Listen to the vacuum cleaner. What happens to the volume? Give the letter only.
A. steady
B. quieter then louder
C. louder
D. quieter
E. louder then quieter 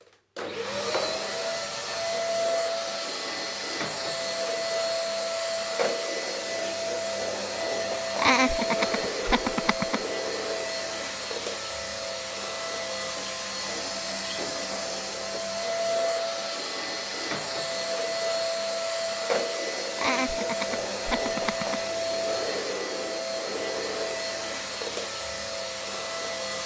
A.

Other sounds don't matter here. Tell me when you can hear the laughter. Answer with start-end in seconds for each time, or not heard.
8.2-10.0, 19.9-21.8.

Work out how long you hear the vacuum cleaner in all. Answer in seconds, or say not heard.
26 s.